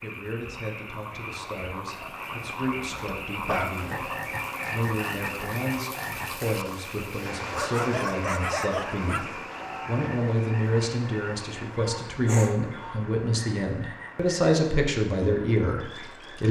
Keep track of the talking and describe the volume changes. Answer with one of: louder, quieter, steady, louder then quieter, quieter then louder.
louder.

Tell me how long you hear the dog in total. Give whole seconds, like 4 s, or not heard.
4 s.